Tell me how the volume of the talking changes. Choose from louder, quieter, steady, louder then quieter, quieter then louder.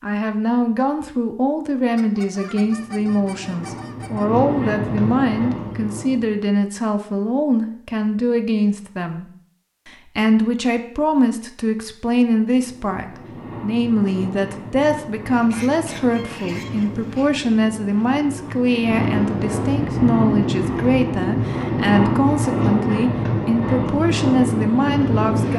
steady.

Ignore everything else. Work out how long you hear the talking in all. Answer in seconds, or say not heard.
25 s.